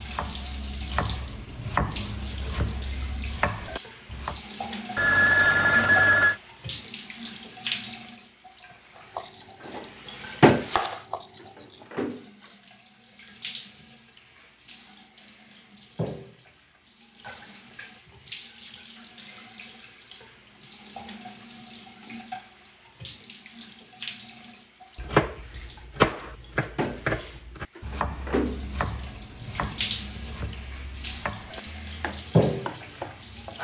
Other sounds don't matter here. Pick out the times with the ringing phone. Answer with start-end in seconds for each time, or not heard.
5.0-6.3.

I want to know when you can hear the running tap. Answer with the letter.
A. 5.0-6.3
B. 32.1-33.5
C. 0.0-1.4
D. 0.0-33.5
D.